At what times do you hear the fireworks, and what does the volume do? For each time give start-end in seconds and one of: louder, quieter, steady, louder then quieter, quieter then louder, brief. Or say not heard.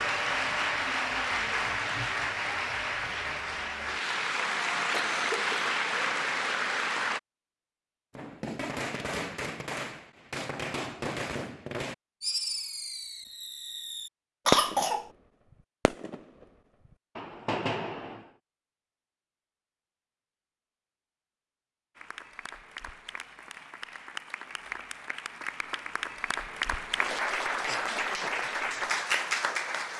8.2-15.2 louder
15.8-18.3 brief.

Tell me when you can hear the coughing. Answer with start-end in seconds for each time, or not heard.
4.9-5.5, 14.4-15.1, 27.6-28.5.